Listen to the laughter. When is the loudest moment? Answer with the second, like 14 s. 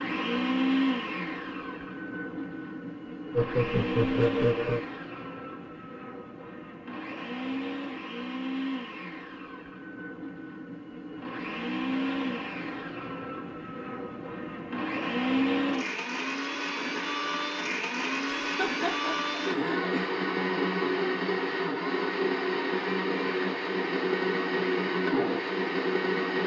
4 s.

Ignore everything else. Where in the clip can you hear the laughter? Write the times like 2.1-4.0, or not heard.
3.3-4.8, 18.6-19.9.